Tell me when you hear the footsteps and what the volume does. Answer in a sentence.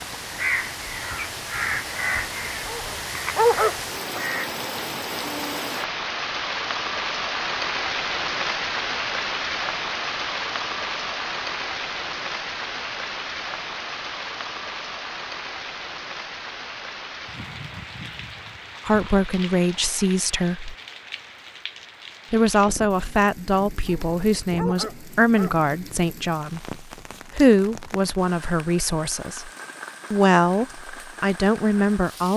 You can't hear the footsteps here.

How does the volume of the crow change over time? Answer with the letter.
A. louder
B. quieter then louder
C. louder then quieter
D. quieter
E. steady
D.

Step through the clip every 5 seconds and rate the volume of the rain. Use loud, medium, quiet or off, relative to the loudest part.
medium, loud, loud, medium, quiet, quiet, quiet.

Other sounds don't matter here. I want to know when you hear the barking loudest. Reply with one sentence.
The volume of the barking peaks at 4 seconds.